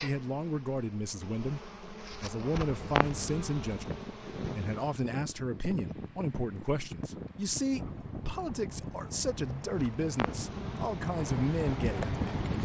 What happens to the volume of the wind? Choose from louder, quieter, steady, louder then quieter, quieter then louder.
louder.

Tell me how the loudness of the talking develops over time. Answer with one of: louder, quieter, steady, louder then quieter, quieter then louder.
steady.